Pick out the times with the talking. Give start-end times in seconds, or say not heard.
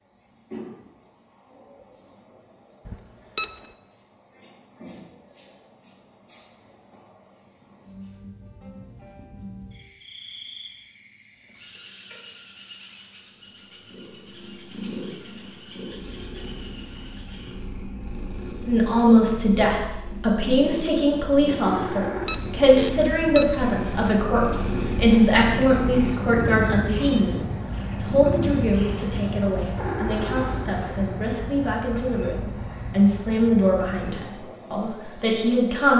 18.6-35.9.